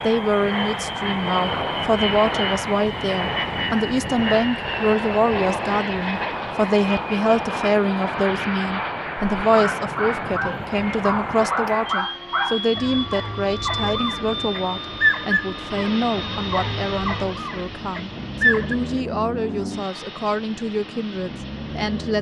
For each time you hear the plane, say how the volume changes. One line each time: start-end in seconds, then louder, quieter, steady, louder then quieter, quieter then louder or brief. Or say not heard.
0.0-22.1 quieter.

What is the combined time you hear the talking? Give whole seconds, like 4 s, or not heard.
22 s.